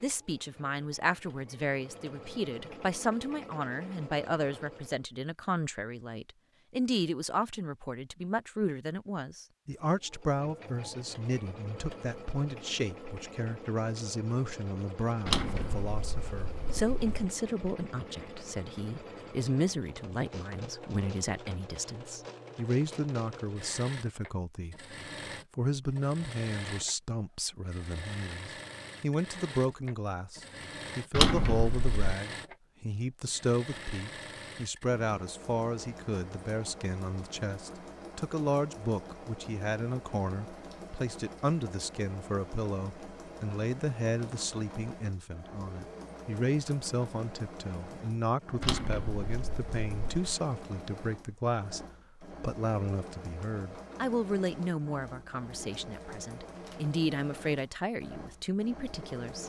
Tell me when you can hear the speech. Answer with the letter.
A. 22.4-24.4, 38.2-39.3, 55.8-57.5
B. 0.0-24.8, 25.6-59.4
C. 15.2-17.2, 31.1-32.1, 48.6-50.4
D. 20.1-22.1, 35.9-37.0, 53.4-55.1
B.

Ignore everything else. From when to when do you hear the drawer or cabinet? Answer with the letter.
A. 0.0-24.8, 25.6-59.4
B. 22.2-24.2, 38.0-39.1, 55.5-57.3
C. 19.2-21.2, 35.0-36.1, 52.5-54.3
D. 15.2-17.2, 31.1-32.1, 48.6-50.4
D.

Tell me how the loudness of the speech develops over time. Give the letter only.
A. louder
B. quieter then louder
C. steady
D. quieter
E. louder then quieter
C.